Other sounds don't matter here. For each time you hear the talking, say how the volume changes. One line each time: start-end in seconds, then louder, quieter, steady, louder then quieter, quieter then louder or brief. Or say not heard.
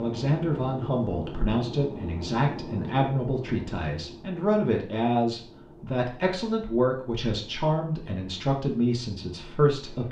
0.0-10.0 steady.